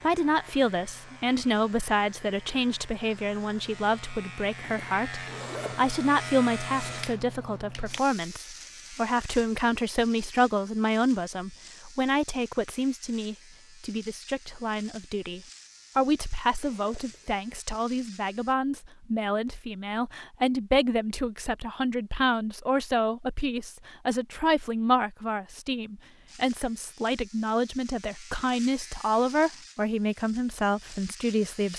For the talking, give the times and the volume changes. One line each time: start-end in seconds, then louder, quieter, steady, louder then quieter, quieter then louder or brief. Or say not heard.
0.0-31.7 steady.